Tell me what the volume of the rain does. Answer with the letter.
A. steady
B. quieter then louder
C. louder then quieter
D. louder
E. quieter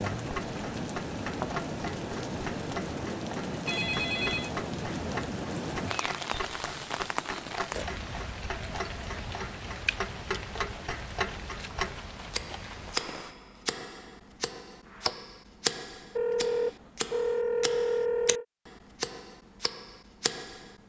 E.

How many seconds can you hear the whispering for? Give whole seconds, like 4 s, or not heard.
not heard.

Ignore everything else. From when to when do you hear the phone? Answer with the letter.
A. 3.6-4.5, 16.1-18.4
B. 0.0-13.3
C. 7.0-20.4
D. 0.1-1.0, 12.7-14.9
A.